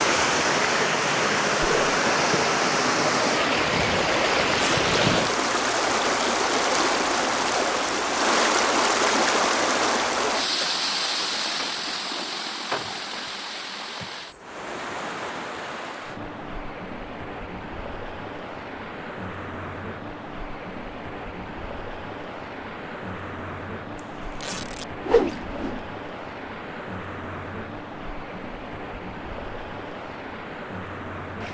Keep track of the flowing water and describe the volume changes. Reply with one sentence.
The volume of the flowing water goes down.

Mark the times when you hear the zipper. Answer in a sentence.
You can hear the zipper from 4.5 to 5.0 s and from 24.4 to 24.9 s.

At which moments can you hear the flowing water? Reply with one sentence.
The flowing water can be heard from 0.0 to 31.4 s.